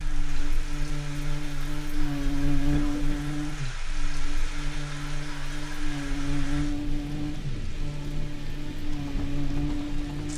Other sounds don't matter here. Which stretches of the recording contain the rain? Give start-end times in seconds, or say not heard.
0.0-10.3.